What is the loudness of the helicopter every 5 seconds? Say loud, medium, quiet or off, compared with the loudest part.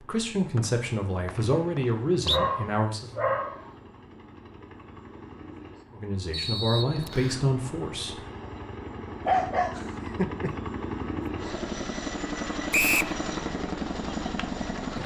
quiet, medium, loud.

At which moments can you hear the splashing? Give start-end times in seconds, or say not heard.
not heard.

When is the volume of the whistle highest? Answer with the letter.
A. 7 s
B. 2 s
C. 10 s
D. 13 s
D.